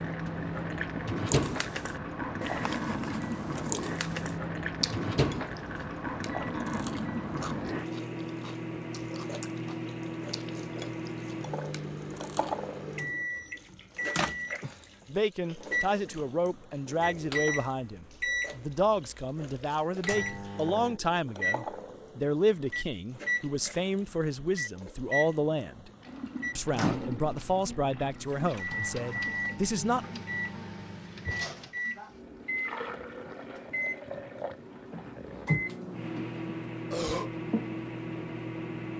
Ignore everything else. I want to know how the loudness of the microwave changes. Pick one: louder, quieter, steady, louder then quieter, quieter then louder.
steady.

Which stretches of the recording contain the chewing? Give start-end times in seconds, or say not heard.
1.2-12.7.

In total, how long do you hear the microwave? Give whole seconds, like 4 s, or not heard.
39 s.